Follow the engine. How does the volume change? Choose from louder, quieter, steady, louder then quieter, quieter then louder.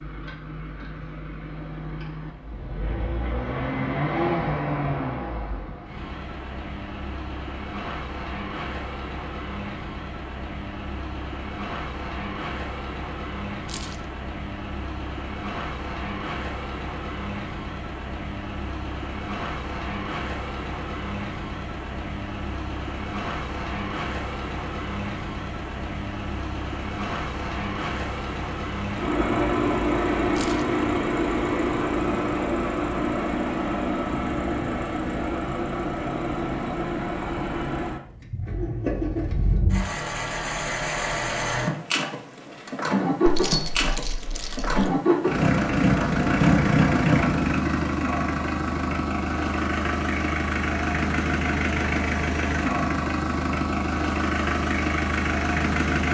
louder.